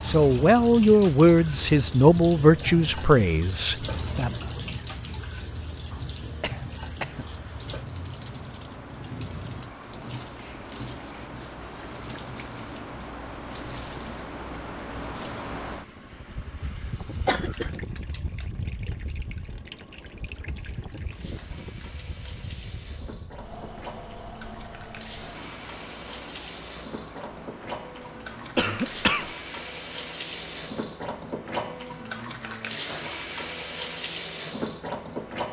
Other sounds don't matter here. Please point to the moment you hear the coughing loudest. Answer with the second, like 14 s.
29 s.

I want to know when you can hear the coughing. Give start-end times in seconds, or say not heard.
5.9-7.2, 17.2-17.8, 28.6-29.4.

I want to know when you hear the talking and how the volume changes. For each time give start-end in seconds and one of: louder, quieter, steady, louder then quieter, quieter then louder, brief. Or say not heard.
0.1-4.3 quieter.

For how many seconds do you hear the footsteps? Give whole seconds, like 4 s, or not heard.
not heard.